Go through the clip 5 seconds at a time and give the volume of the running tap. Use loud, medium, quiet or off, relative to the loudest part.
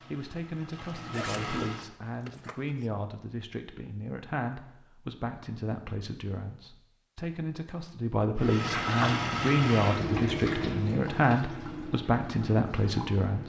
medium, loud, medium.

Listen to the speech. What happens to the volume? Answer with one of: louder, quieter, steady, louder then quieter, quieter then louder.
louder.